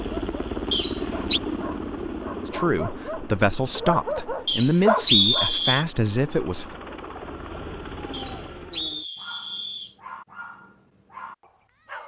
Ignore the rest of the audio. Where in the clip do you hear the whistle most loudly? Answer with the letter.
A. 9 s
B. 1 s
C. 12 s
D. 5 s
D.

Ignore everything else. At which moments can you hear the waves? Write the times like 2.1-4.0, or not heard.
not heard.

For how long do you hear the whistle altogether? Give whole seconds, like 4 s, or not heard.
4 s.